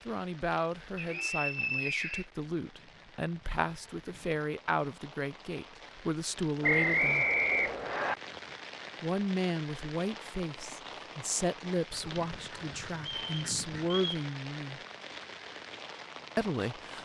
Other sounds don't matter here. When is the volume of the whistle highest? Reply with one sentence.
The volume of the whistle peaks at 7 seconds.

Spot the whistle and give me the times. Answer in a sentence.
You can hear the whistle from 0.9 to 2.2 s, from 6.6 to 8.2 s and from 13.2 to 14.2 s.